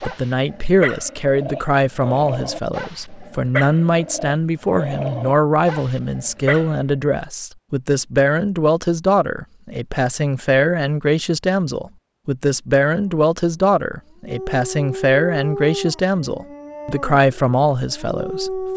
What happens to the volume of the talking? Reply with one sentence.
The volume of the talking stays about the same.